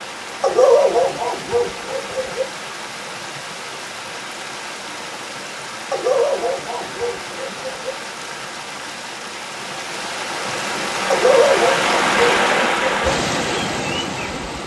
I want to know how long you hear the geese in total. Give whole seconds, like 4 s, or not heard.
not heard.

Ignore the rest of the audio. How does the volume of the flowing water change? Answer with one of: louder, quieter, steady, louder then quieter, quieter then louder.
louder.